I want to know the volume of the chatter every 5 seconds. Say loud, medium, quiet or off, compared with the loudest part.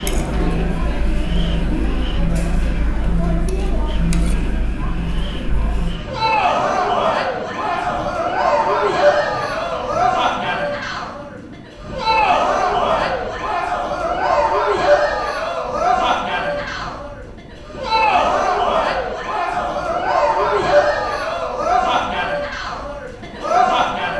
medium, loud, loud, loud, loud.